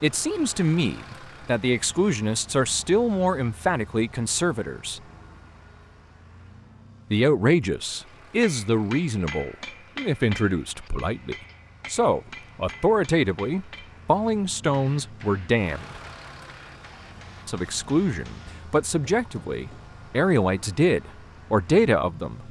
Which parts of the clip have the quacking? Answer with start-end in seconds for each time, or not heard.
not heard.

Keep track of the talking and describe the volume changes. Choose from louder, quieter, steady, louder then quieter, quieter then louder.
steady.